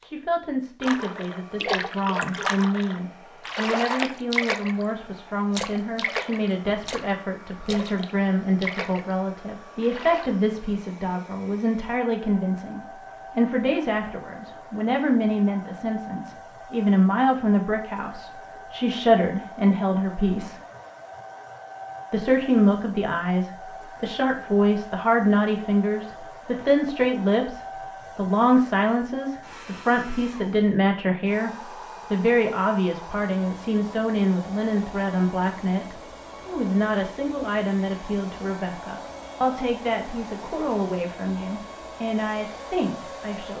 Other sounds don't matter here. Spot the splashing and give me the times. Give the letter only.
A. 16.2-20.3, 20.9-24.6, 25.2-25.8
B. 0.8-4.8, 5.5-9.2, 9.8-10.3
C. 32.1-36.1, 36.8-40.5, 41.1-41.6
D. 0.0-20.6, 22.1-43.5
B.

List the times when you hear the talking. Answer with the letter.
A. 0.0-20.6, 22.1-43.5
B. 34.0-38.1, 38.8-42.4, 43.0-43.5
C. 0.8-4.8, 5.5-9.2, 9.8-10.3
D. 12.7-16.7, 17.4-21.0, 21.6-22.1
A.